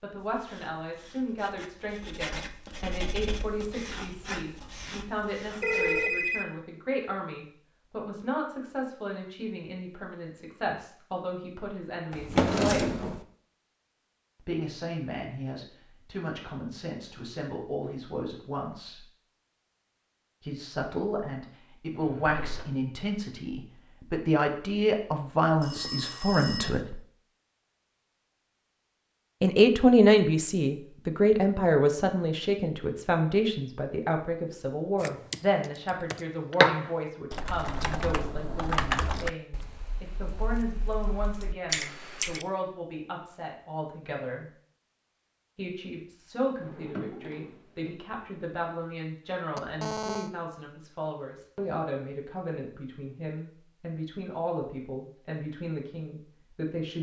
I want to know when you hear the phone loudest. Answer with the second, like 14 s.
6 s.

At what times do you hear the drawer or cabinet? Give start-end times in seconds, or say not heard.
12.1-13.2, 21.9-22.6, 46.5-48.0.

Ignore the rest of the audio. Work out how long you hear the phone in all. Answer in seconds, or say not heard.
3 s.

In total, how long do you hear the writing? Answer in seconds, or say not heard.
6 s.